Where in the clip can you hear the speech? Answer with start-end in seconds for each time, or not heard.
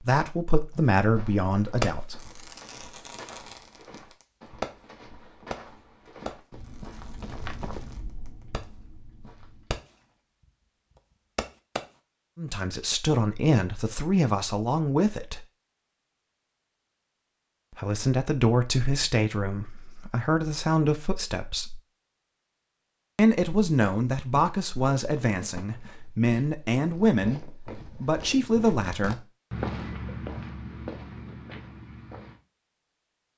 0.0-2.4, 12.3-15.4, 17.8-21.8, 23.1-29.2.